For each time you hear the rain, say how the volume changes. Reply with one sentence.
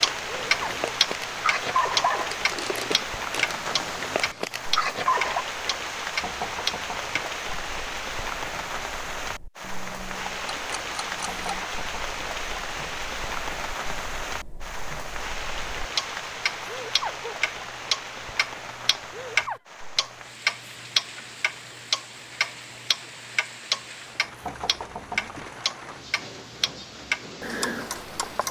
The rain can be heard from 0.0 to 28.4 s, getting quieter.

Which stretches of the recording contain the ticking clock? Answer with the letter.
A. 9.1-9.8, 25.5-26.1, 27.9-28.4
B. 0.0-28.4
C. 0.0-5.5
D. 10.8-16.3
B.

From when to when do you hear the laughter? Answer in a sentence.
The laughter can be heard from 0.2 to 0.9 s, from 16.6 to 17.3 s and from 19.1 to 19.6 s.